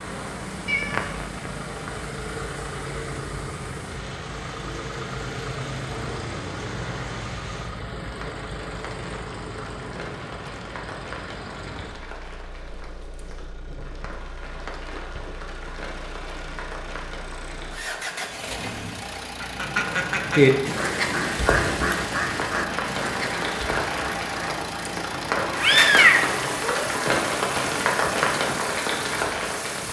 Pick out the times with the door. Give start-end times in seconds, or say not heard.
not heard.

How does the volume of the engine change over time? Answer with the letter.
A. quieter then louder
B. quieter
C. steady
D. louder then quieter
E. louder
A.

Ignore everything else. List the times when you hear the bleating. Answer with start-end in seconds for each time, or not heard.
not heard.